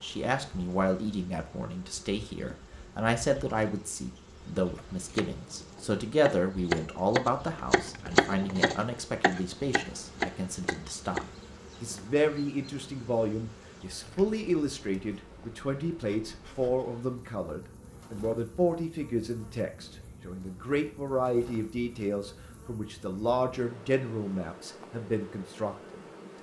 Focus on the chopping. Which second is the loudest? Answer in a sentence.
The loudest moment of the chopping is at 8 seconds.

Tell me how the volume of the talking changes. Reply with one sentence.
The loudness of the talking stays about the same.